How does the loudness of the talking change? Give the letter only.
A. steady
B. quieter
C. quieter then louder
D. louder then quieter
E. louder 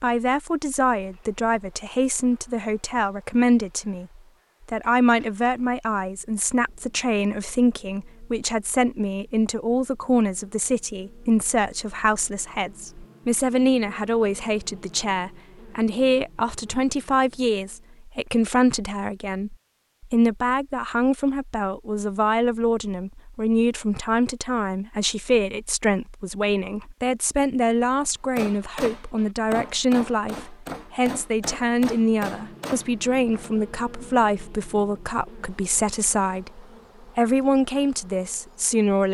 A.